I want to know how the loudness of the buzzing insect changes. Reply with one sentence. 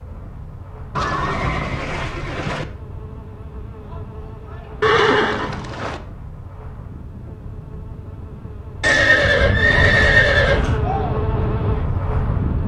The loudness of the buzzing insect goes up.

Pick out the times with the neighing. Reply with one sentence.
The neighing can be heard from 0.9 to 2.6 s, from 4.8 to 6.0 s and from 8.8 to 10.8 s.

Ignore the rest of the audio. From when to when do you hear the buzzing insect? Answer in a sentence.
The buzzing insect can be heard from 0.0 to 12.6 s.